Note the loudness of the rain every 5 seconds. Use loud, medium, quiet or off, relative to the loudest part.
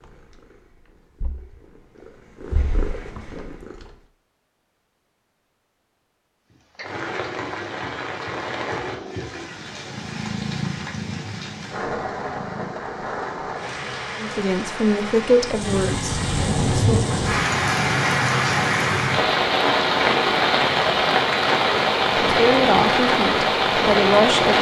off, quiet, quiet, loud, loud.